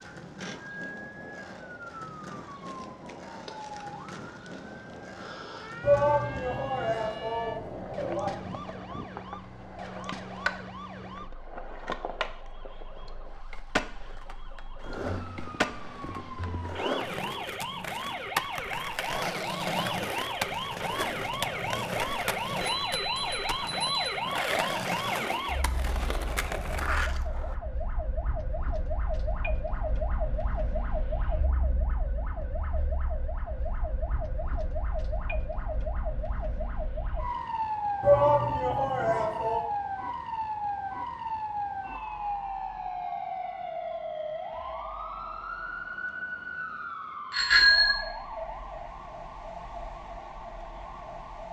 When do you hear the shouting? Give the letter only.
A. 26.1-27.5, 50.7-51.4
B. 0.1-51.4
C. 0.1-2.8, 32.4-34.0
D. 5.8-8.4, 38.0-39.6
D.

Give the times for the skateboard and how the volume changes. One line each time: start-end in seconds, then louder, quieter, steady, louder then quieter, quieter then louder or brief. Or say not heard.
0.0-27.6 louder.